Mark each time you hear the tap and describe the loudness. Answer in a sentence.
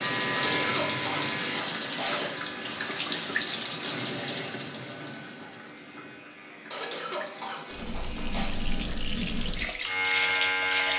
The tap can be heard from 0.0 to 10.9 s, getting quieter then louder.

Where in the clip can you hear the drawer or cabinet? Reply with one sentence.
You can't hear the drawer or cabinet here.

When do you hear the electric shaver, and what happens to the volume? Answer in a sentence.
You can hear the electric shaver from 0.0 to 10.9 s, getting quieter then louder.